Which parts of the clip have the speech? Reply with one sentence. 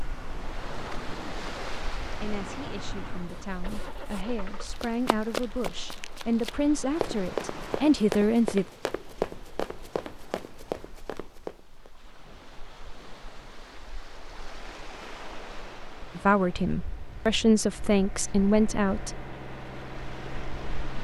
You can hear the speech from 2.2 to 8.7 s and from 16.1 to 19.1 s.